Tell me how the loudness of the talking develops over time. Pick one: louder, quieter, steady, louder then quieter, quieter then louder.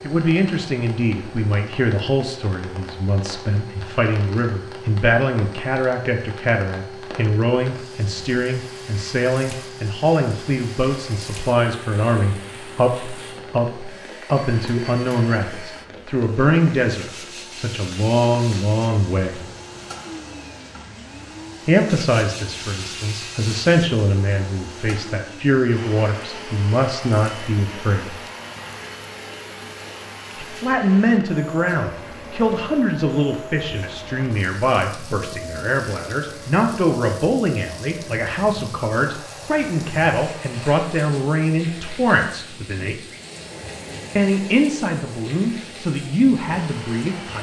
steady.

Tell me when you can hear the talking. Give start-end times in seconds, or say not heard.
0.0-19.4, 21.6-28.1, 30.4-43.0, 44.1-47.3.